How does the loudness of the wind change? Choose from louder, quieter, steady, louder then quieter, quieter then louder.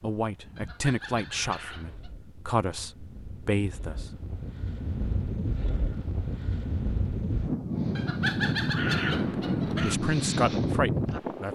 louder.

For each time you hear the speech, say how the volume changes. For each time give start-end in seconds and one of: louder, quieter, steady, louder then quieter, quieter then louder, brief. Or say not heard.
0.0-4.2 quieter then louder
9.1-11.5 brief.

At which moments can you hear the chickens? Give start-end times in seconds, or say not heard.
0.6-2.1, 8.0-9.9.